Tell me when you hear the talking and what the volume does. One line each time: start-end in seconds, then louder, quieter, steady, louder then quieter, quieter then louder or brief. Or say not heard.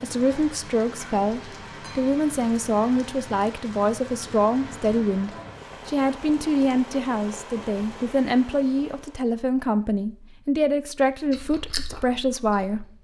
0.0-12.8 steady.